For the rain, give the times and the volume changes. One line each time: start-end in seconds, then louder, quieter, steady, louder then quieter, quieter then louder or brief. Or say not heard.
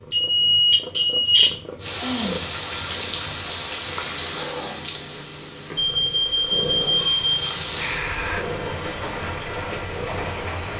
1.8-10.7 quieter then louder.